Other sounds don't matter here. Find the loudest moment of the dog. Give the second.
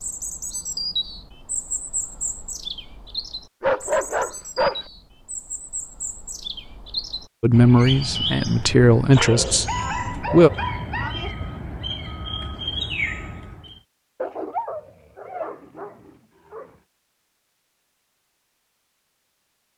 4 s.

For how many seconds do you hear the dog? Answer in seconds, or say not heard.
6 s.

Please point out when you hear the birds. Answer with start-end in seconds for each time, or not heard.
0.0-13.8.